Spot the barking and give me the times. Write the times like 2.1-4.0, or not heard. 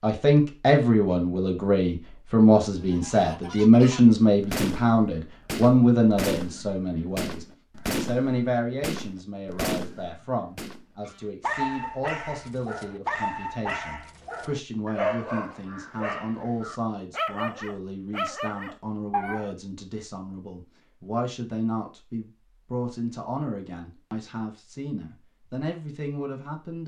11.4-19.6.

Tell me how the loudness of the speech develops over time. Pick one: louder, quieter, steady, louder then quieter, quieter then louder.
quieter.